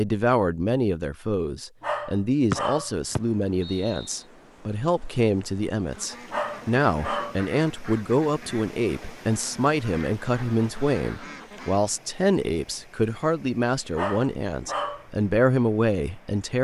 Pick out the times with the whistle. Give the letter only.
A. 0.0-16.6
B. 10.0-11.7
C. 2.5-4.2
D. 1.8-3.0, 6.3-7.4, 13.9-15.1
C.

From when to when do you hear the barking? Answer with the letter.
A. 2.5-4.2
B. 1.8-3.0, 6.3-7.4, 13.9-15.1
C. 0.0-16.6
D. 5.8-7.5
B.